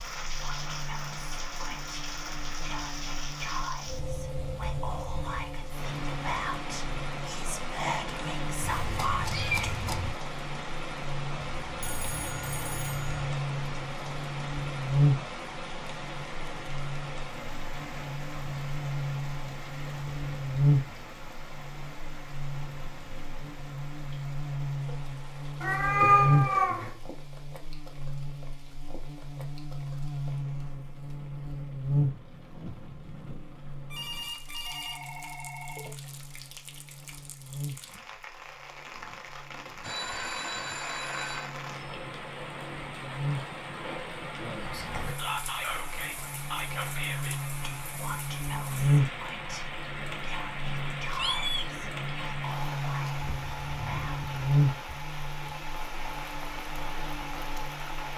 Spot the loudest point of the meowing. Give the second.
26 s.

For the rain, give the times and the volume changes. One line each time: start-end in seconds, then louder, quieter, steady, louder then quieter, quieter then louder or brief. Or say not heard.
0.0-58.1 quieter then louder.